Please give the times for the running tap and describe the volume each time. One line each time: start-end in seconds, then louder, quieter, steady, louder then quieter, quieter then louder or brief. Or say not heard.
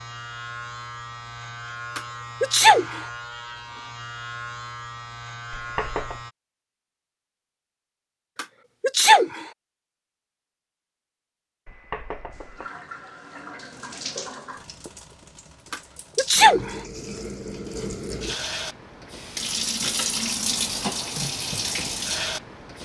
12.3-22.8 louder.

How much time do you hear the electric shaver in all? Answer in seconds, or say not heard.
6 s.